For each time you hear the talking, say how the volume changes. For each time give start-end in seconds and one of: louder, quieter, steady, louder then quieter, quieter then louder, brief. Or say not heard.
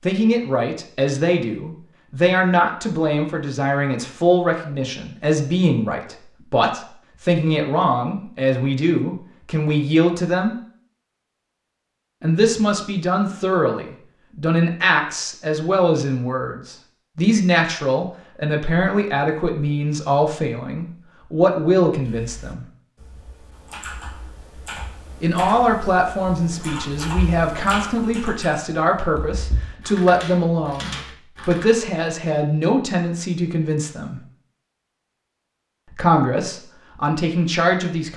0.0-10.6 steady
12.2-22.6 steady
25.2-34.2 steady
35.9-38.1 brief.